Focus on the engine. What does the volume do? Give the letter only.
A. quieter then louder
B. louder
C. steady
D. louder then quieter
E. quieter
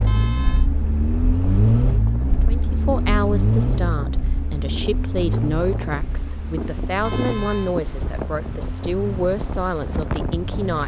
E.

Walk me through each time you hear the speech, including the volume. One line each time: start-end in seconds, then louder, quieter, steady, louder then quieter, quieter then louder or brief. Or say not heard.
2.5-10.8 steady.